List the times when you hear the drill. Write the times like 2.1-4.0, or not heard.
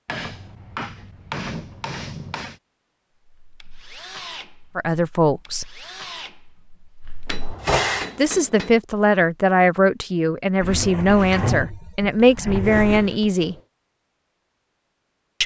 3.4-8.2.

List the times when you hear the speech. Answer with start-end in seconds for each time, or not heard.
4.8-5.7, 8.2-13.6.